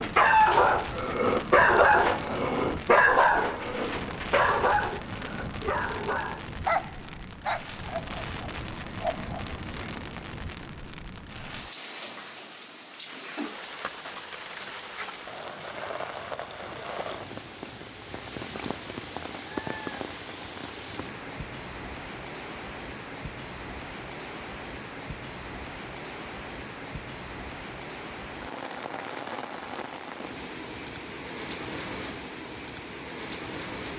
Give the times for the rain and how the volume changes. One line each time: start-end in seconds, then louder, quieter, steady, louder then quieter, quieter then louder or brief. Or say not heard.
0.0-33.9 steady.